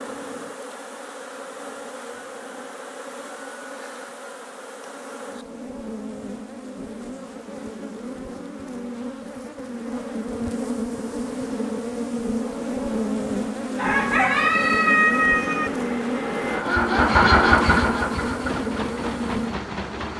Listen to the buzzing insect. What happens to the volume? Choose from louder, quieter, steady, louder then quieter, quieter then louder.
louder.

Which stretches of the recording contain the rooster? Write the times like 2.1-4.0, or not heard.
13.8-15.7.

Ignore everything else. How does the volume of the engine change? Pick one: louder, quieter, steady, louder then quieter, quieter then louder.
louder then quieter.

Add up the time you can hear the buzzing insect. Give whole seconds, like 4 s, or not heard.
20 s.